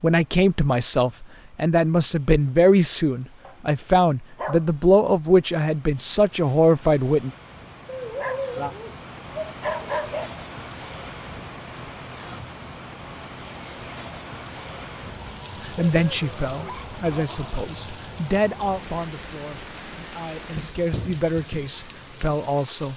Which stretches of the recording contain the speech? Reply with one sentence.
The speech can be heard from 0.0 to 7.3 s and from 15.6 to 22.9 s.